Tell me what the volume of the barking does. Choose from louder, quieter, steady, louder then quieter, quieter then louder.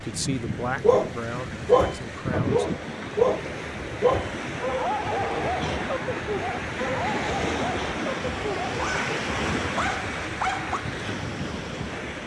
quieter.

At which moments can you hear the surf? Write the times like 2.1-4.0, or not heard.
0.0-12.2.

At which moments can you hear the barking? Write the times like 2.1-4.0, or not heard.
0.8-10.8.